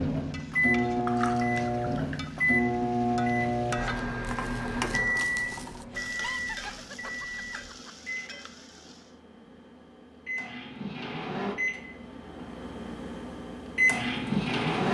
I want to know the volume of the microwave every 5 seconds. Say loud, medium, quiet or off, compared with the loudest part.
loud, medium, loud.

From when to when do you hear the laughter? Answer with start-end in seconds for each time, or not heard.
6.0-7.9.